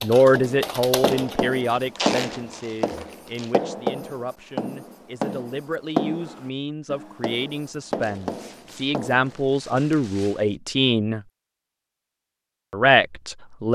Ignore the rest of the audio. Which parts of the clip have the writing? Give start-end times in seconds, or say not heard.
0.3-9.8.